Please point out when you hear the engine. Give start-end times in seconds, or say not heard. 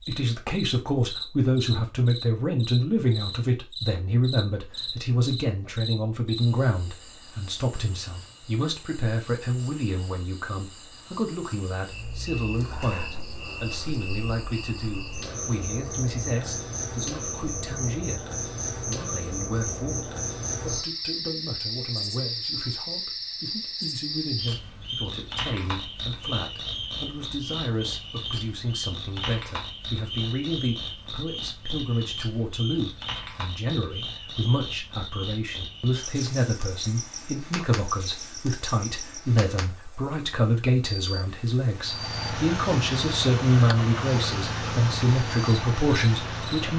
41.7-46.7.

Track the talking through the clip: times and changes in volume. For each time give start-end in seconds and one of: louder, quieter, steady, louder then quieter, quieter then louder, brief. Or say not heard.
0.1-46.7 quieter then louder.